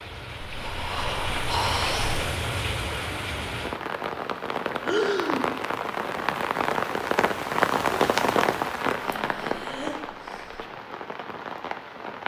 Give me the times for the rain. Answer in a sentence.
The rain can be heard from 0.0 to 12.2 s.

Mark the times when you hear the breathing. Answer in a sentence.
You can hear the breathing from 0.5 to 2.2 s, from 4.8 to 5.5 s and from 9.0 to 10.7 s.